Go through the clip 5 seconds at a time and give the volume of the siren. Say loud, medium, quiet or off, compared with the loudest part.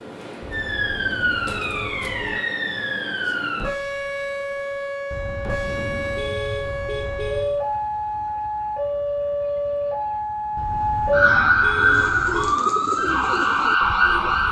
medium, medium, loud.